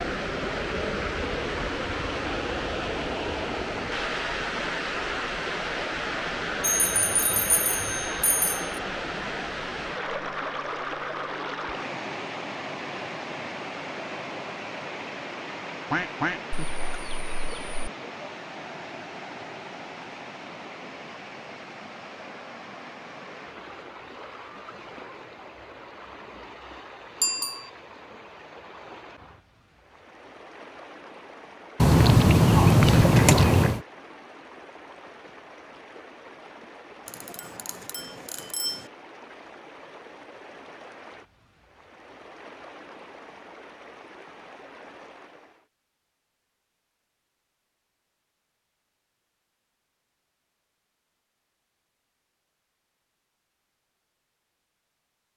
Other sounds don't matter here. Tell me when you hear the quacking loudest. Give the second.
33 s.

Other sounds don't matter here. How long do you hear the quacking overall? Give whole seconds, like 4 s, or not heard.
4 s.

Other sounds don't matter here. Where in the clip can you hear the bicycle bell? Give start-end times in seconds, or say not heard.
6.6-8.7, 27.2-27.7, 37.0-38.9.